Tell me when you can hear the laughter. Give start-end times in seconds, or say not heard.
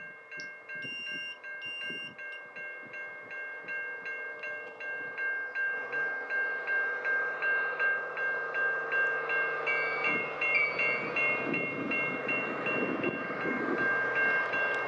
not heard.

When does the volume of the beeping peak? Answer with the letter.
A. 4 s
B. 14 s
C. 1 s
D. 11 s
D.